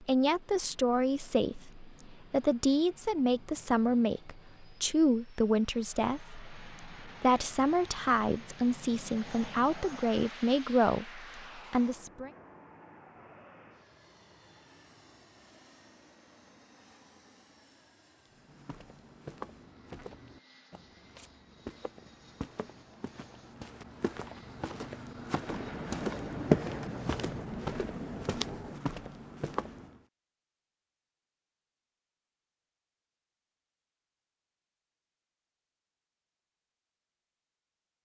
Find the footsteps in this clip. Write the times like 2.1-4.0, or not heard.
18.3-30.0.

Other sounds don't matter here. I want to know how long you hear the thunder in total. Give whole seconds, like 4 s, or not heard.
3 s.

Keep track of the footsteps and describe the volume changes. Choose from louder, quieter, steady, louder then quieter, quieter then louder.
louder then quieter.